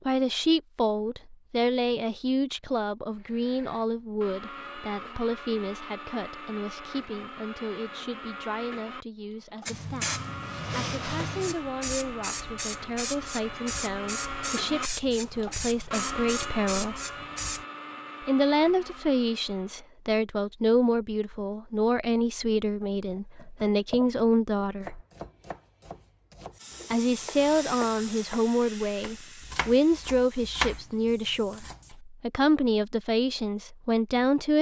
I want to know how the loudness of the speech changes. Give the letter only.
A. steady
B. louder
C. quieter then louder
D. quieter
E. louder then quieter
C.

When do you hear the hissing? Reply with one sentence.
The hissing can be heard from 9.7 to 17.6 s and from 26.6 to 31.9 s.